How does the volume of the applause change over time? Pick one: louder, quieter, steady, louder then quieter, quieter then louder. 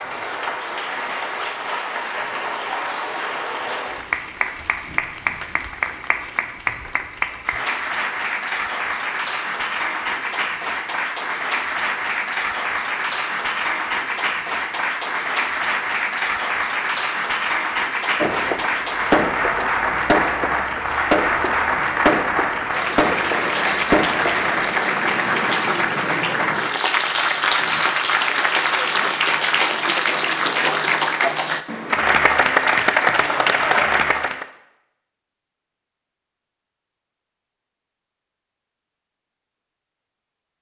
louder.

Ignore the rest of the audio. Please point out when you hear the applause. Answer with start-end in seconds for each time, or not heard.
0.0-34.5.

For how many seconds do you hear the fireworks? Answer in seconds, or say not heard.
6 s.